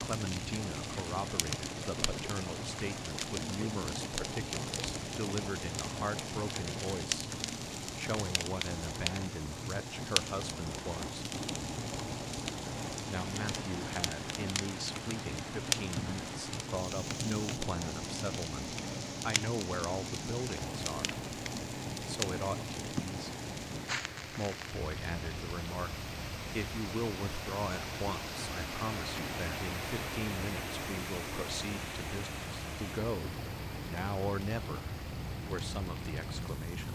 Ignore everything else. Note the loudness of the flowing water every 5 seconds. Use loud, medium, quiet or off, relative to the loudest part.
medium, medium, medium, medium, medium, loud, loud, medium.